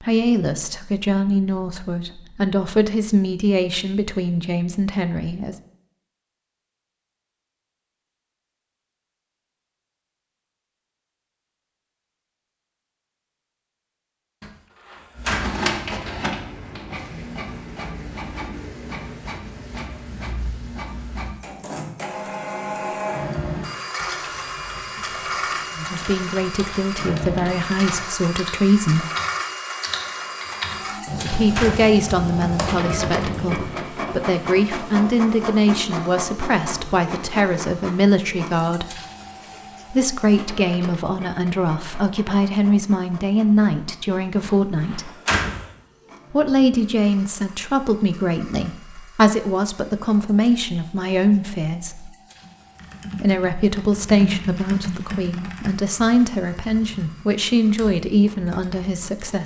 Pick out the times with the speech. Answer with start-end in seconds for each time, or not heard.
0.0-5.5, 25.8-29.1, 31.1-39.0, 39.9-45.1, 46.3-52.1, 53.1-59.4.